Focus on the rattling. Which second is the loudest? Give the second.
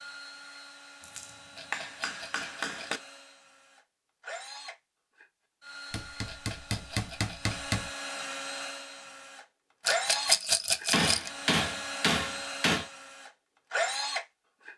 10 s.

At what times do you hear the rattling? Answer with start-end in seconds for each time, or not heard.
1.6-3.0, 6.2-7.6, 9.8-11.3.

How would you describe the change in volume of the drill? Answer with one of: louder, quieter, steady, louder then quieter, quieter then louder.
louder.